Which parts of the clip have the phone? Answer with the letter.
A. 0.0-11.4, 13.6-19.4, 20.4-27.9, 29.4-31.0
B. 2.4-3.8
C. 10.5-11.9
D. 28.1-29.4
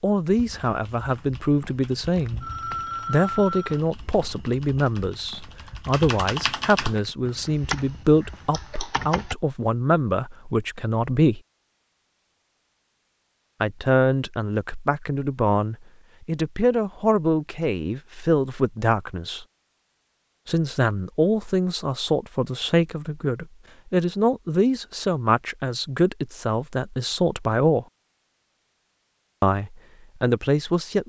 B.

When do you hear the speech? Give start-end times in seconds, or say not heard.
0.0-11.4, 13.6-19.4, 20.4-27.9, 29.4-31.0.